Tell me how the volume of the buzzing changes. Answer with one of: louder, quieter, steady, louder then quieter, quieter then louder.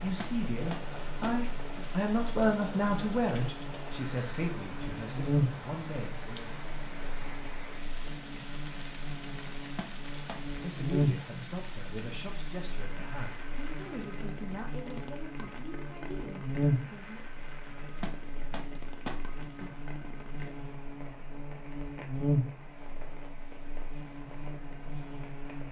quieter then louder.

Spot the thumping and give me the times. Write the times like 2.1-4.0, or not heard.
0.1-1.9, 9.8-10.4, 18.0-19.7.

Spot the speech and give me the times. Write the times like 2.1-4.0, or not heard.
0.0-6.6, 10.6-17.2.